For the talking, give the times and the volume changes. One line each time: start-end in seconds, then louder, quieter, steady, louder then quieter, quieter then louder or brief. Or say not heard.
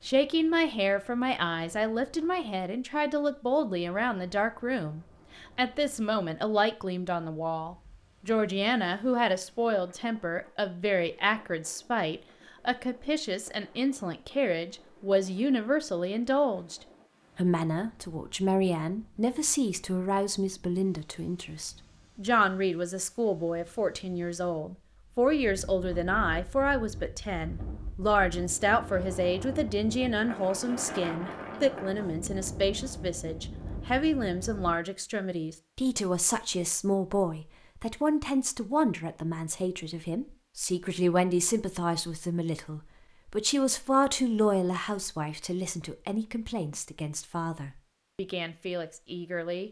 0.0-49.6 steady.